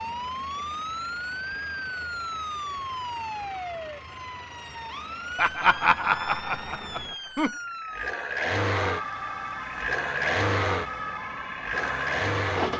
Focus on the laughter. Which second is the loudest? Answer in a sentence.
The volume of the laughter peaks at 6 seconds.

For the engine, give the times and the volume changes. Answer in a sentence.
You can hear the engine from 0.0 to 12.7 s, getting louder.